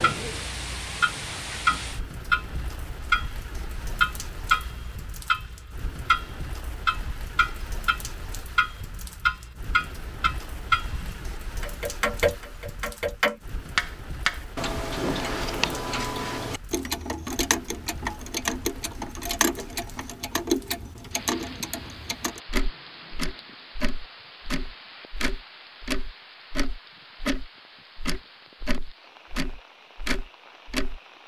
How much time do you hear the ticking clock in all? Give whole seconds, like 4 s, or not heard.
31 s.